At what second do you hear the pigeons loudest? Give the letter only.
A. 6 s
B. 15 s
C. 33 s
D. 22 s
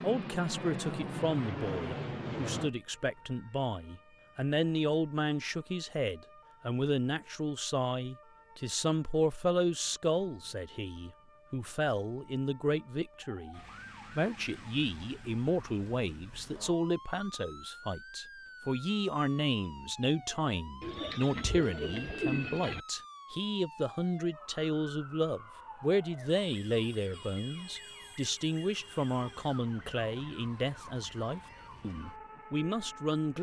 D.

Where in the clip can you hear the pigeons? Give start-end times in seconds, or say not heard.
20.8-22.9.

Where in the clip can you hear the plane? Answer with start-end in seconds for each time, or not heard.
0.0-2.7.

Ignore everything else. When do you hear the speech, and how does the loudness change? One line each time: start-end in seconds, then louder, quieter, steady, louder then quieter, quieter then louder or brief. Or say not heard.
0.0-33.3 steady.